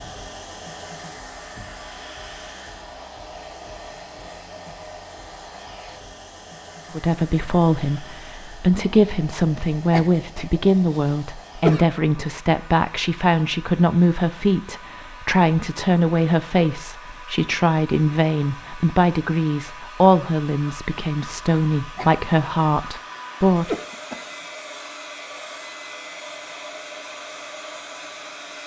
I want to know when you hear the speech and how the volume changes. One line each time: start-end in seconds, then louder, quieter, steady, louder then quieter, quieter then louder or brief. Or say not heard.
6.9-23.8 steady.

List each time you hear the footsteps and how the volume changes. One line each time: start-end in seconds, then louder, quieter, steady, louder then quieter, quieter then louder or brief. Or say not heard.
not heard.